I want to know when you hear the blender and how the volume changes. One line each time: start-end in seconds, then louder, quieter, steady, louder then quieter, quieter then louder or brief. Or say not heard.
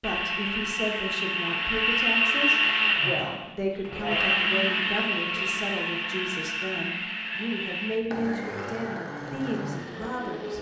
0.0-10.5 quieter.